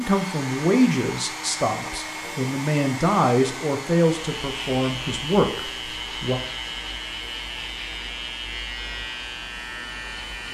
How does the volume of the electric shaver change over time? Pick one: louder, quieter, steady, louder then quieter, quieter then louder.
steady.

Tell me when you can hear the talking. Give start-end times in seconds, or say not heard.
0.0-6.4.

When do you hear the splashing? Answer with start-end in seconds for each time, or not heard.
not heard.